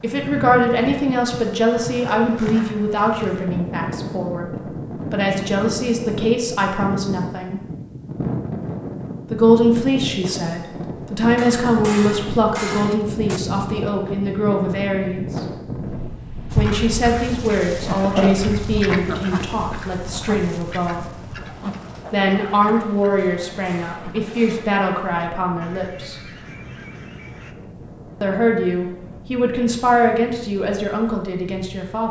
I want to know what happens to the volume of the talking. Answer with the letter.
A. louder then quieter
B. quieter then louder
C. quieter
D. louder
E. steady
E.